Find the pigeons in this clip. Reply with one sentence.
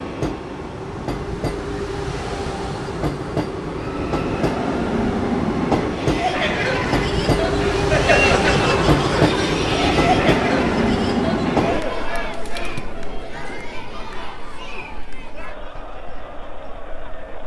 You can't hear the pigeons here.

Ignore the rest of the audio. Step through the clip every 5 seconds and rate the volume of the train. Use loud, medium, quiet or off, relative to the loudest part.
medium, loud, loud, quiet.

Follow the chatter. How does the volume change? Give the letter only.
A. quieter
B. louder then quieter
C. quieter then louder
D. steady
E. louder
A.